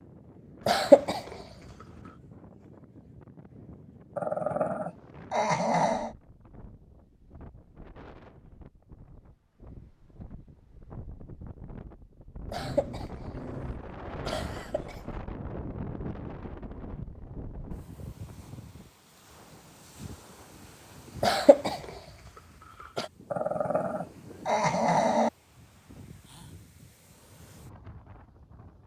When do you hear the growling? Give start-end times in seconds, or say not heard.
4.2-6.2, 12.6-15.1, 23.3-25.3.